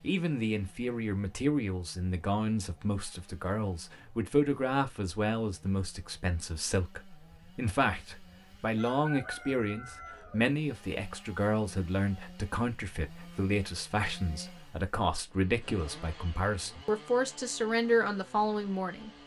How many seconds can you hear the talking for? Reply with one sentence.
The talking can be heard for 19 seconds in total.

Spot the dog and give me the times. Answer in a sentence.
The dog can't be heard in this clip.